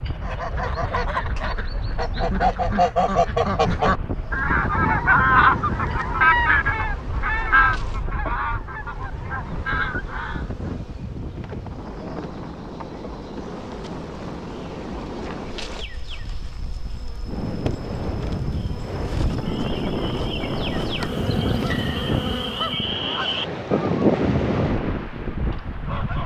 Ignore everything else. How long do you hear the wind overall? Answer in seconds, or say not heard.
26 s.